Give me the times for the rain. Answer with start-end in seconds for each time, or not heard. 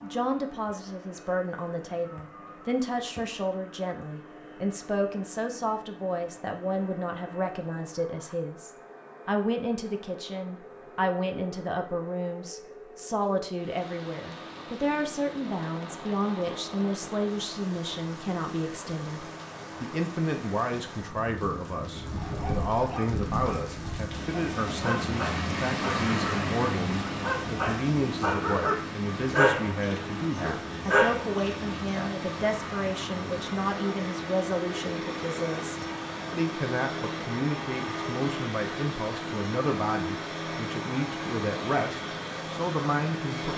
13.5-43.5.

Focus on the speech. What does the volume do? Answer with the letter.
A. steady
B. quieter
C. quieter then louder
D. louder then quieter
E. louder
A.